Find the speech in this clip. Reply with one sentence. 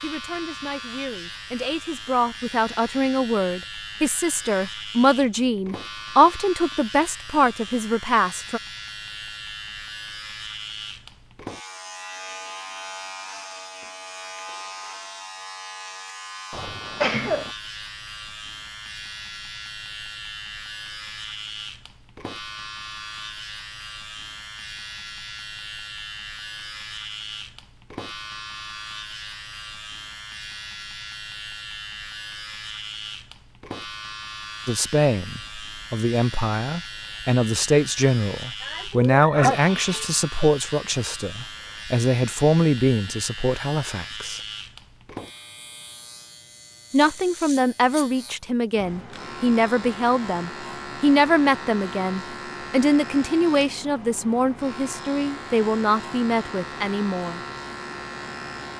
You can hear the speech from 0.0 to 8.6 s, from 34.6 to 44.4 s and from 46.9 to 57.4 s.